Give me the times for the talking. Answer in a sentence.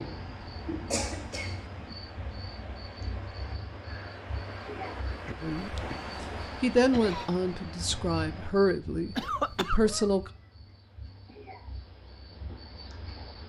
You can hear the talking from 5.4 to 10.3 s.